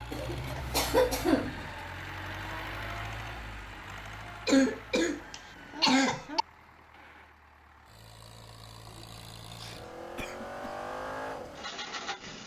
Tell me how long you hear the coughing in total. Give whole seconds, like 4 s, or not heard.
5 s.